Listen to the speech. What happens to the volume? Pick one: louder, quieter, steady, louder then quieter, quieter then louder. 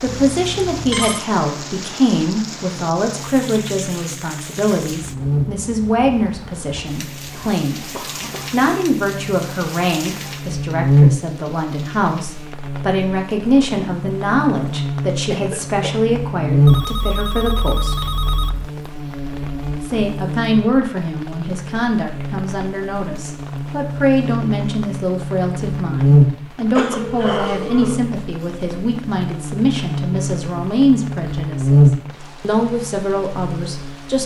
steady.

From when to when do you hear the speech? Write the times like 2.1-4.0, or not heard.
0.0-7.8, 8.5-18.1, 19.8-34.2.